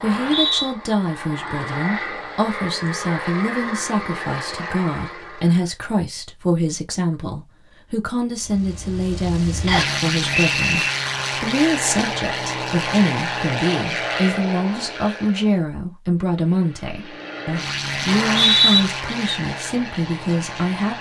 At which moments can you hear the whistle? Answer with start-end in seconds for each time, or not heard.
0.0-0.7, 9.7-10.9, 18.1-18.9.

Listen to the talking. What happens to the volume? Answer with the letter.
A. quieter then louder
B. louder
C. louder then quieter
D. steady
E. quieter
D.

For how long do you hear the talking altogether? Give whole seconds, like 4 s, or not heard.
21 s.